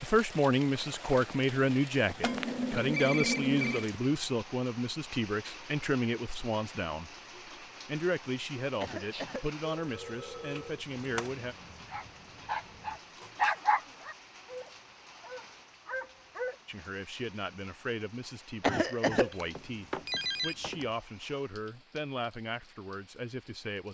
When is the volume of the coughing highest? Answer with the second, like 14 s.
19 s.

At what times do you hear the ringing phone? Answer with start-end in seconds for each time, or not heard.
2.2-3.9, 9.8-11.3, 19.1-20.9.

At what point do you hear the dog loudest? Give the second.
14 s.